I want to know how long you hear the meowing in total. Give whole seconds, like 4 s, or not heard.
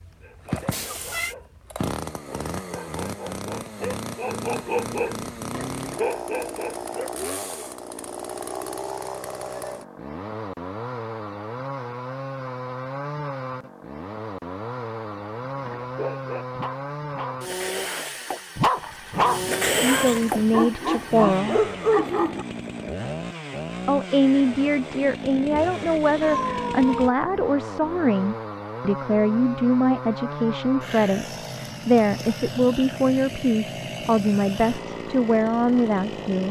3 s.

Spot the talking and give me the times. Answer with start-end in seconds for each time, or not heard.
19.7-21.6, 23.9-36.4.